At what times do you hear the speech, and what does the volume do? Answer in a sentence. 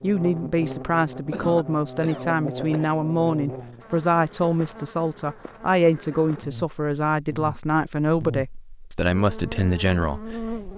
You can hear the speech from 0.0 to 10.7 s, at a steady volume.